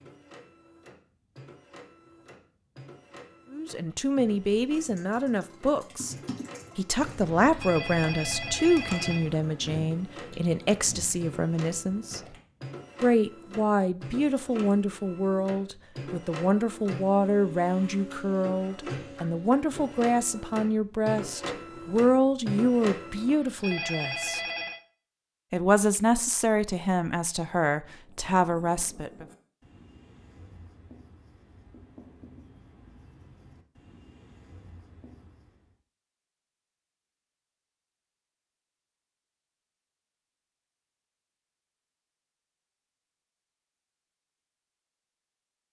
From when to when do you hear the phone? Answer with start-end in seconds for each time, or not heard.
7.4-9.2, 23.2-24.8.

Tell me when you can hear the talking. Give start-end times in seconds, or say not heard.
3.5-6.2, 6.8-12.2, 13.0-24.4, 25.5-29.2.